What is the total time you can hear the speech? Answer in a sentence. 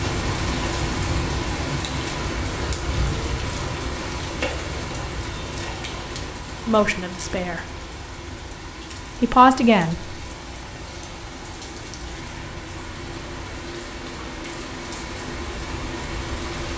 The speech can be heard for 2 seconds in total.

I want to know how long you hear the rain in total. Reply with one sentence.
The rain can be heard for 17 seconds in total.